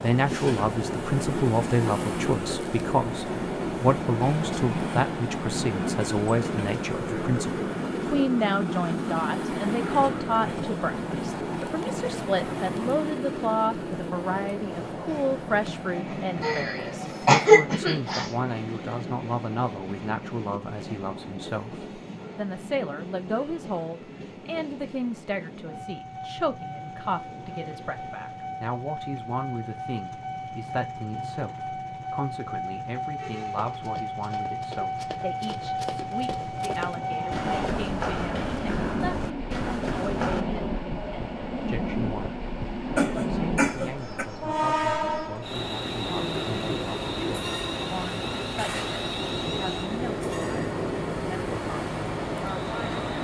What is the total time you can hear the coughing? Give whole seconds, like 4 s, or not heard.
3 s.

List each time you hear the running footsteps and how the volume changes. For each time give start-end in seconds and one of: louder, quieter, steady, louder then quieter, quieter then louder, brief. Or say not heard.
33.6-40.5 louder.